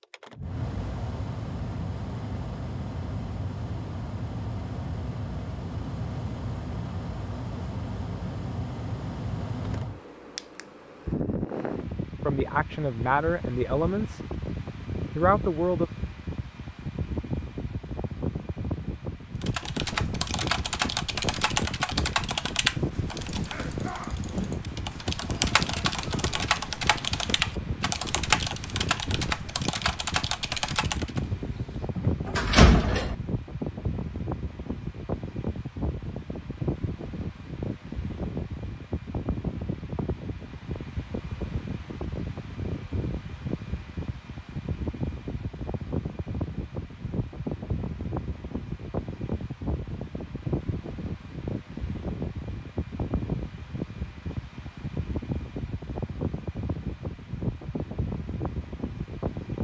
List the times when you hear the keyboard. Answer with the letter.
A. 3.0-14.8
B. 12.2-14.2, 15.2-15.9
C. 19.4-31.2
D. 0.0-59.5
C.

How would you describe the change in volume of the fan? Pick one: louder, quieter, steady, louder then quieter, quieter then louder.
steady.